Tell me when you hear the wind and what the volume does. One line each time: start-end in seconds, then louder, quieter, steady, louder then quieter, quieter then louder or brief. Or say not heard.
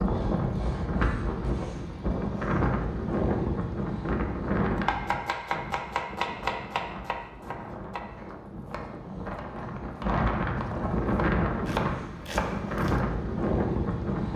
0.0-14.3 quieter then louder.